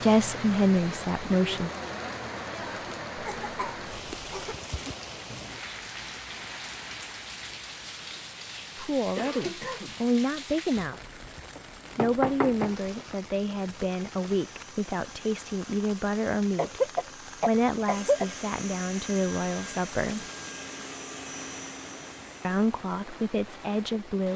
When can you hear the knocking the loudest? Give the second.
12 s.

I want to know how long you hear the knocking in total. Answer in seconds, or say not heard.
2 s.